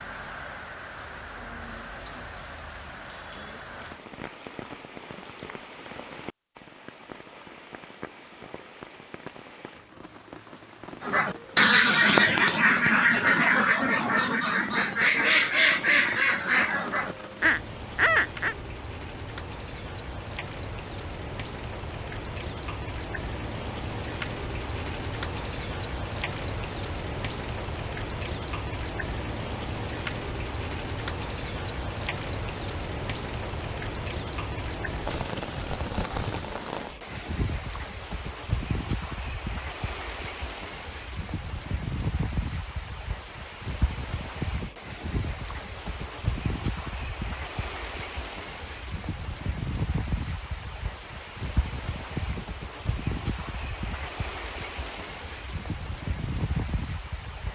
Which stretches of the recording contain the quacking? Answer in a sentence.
The quacking can be heard from 11.0 to 18.6 s.